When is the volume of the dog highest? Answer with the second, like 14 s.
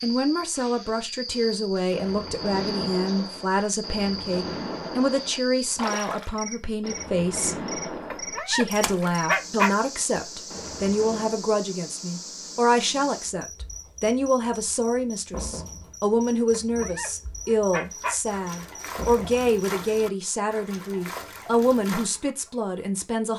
9 s.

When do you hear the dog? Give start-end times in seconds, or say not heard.
8.1-9.7, 16.5-18.1.